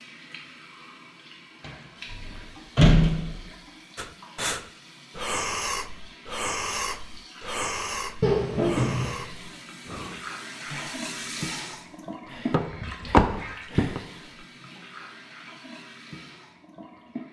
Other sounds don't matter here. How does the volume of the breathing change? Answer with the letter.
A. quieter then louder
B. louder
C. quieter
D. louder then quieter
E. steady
C.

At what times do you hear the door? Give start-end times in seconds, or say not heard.
1.6-3.5, 8.2-9.2, 12.5-14.0.